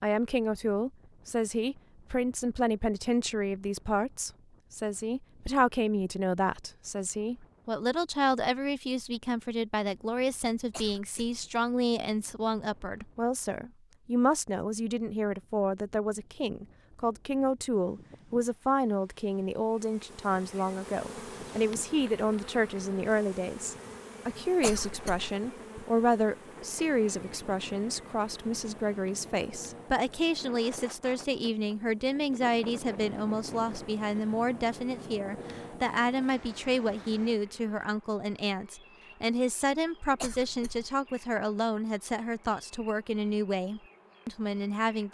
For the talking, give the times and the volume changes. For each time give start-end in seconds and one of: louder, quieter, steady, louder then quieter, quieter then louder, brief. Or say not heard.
0.0-45.0 steady.